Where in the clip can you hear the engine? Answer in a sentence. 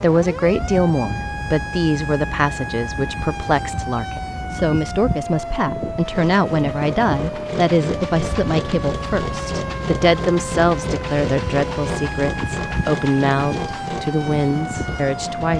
The engine can be heard from 6.0 to 15.5 s.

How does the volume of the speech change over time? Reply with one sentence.
The loudness of the speech stays about the same.